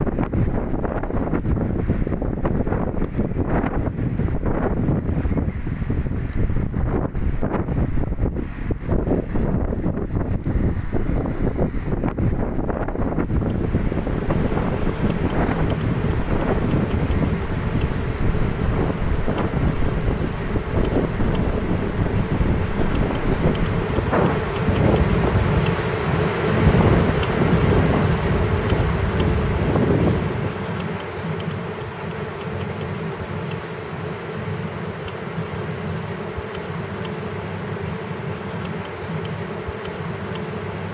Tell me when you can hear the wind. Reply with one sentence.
You can hear the wind from 0.0 to 30.6 s.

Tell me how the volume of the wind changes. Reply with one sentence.
The volume of the wind stays about the same.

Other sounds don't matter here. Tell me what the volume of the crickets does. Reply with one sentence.
The loudness of the crickets goes up, then down.